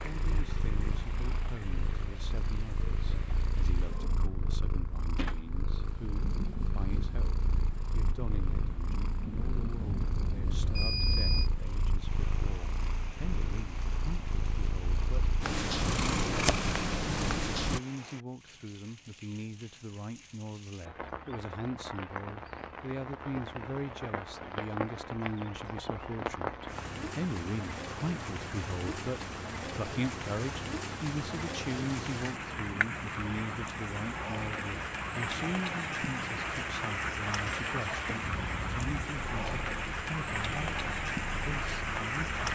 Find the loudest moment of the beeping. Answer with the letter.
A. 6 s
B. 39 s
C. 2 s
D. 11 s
D.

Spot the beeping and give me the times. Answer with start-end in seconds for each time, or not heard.
9.8-11.5, 38.2-38.9.